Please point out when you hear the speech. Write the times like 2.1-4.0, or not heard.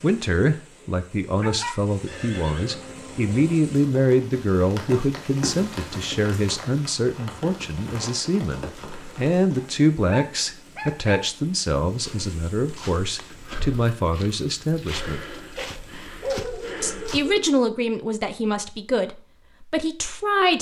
0.0-15.2, 16.8-20.5.